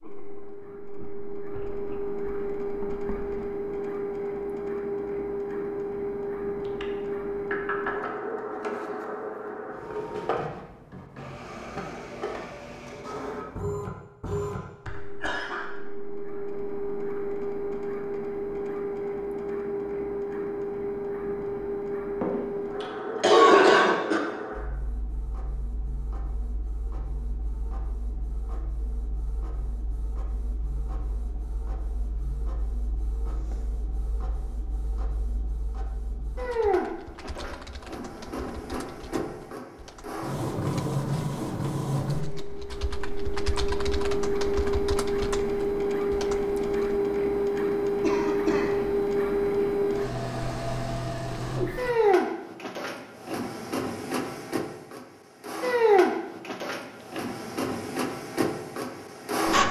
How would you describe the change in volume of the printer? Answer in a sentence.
The volume of the printer goes down, then up.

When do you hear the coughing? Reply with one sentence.
You can hear the coughing from 14.2 to 15.7 s, from 22.2 to 24.2 s and from 48.0 to 48.8 s.